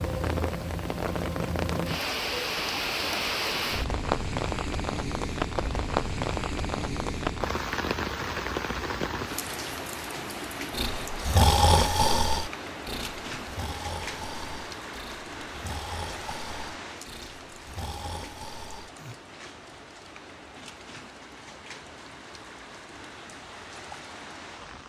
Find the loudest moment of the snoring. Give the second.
12 s.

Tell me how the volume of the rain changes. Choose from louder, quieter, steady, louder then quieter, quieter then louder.
quieter.